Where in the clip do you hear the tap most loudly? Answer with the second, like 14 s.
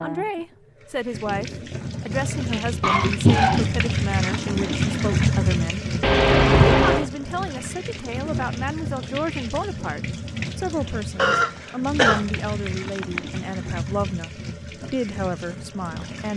5 s.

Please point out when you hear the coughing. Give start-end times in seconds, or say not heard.
2.8-3.8, 6.0-7.1, 11.2-13.2.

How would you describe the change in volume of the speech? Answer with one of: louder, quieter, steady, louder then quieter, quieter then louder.
steady.